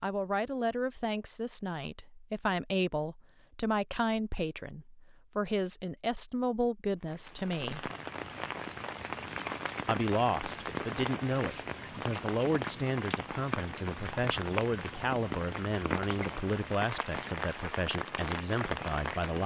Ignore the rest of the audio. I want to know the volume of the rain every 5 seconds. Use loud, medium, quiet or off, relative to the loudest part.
off, loud, loud, loud.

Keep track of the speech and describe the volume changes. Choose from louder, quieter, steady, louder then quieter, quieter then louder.
steady.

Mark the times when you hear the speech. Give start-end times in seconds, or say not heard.
0.0-7.9, 9.8-19.4.